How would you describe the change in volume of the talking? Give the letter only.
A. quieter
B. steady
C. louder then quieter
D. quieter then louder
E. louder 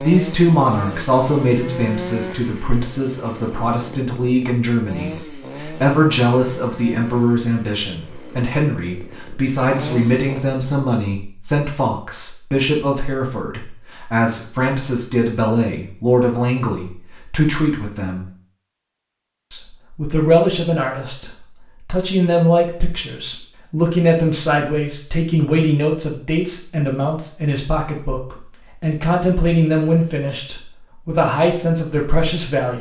B.